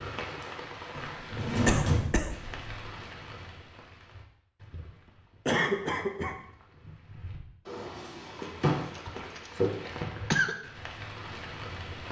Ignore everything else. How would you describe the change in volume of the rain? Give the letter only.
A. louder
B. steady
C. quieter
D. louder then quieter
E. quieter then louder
E.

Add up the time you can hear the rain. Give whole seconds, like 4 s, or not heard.
12 s.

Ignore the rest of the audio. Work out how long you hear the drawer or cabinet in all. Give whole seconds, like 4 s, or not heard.
3 s.